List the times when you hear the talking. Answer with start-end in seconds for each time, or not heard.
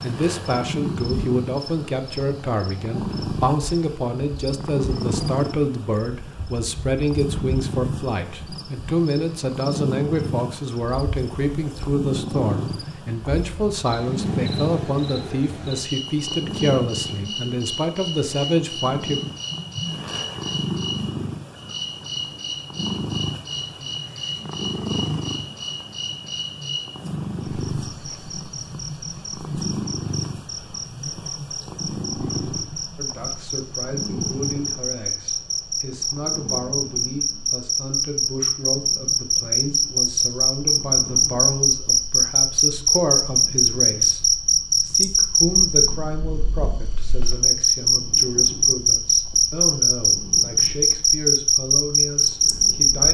0.0-19.2, 33.0-53.0.